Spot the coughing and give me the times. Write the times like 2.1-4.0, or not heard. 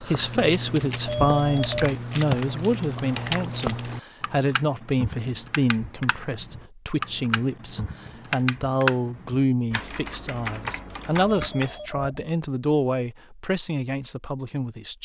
not heard.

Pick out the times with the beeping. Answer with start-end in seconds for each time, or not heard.
1.1-1.9, 11.2-12.2.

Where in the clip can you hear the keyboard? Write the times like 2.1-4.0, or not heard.
0.0-11.7.